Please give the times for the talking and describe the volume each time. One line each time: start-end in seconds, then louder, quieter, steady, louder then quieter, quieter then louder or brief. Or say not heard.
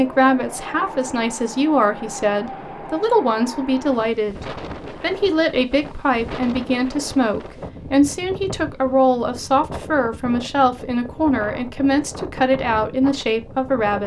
0.0-14.0 steady.